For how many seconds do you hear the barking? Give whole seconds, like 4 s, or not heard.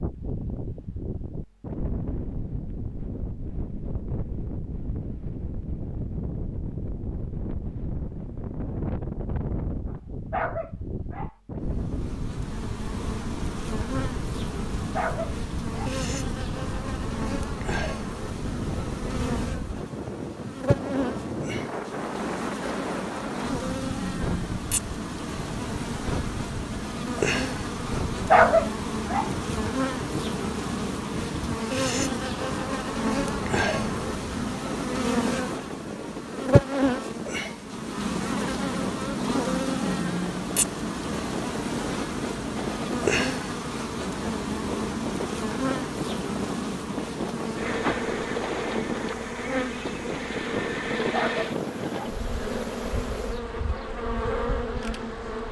4 s.